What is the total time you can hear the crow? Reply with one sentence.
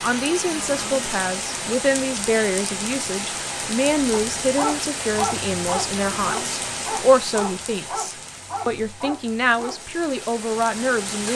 You can't hear the crow here.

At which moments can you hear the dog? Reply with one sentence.
You can hear the dog from 4.1 to 10.0 s.